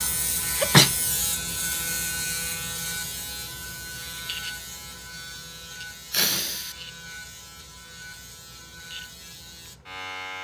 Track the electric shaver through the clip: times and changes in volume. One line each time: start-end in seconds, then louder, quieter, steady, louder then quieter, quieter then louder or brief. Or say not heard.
0.0-10.3 quieter.